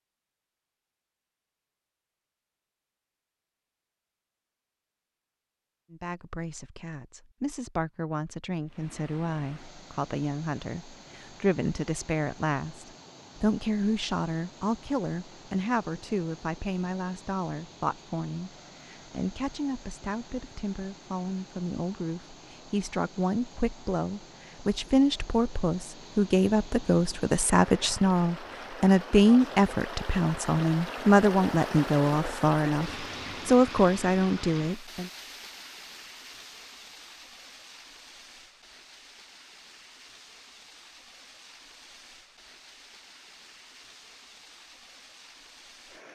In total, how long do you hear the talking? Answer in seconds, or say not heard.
29 s.